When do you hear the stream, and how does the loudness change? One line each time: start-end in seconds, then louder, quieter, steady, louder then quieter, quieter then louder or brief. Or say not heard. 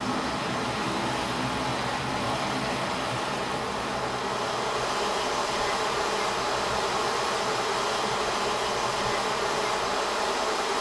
0.0-10.7 quieter.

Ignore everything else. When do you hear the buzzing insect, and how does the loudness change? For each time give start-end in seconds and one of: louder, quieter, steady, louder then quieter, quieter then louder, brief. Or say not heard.
0.0-10.7 louder.